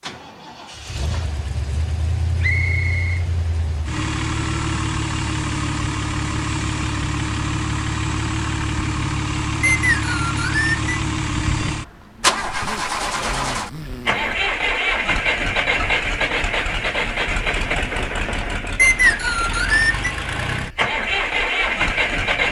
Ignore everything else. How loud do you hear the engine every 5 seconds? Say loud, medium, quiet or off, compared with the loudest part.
medium, loud, loud, loud, loud.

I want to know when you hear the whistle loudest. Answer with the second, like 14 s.
19 s.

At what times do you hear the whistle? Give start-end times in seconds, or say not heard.
2.4-3.2, 9.6-10.9, 18.8-20.1.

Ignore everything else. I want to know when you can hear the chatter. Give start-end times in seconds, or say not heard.
not heard.